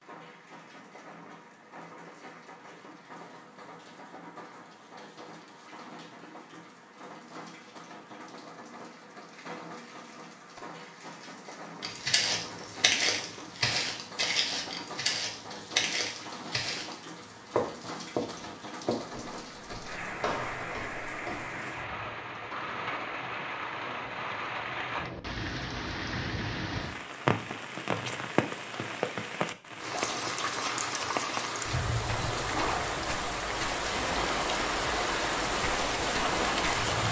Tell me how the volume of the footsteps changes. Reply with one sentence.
The volume of the footsteps goes down.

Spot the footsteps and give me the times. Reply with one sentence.
You can hear the footsteps from 11.8 to 21.4 s.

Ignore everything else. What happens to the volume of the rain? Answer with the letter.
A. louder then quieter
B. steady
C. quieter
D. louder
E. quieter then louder
D.